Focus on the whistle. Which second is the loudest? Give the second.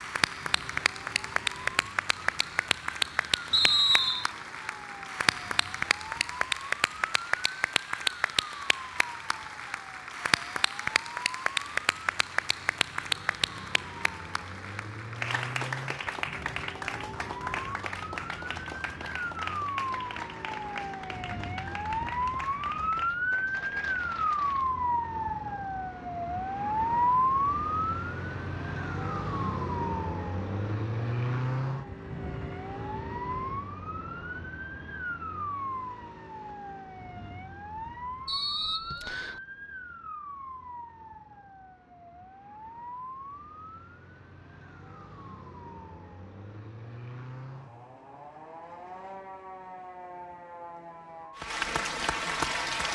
4 s.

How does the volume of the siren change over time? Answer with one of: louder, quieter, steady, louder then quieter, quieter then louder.
louder then quieter.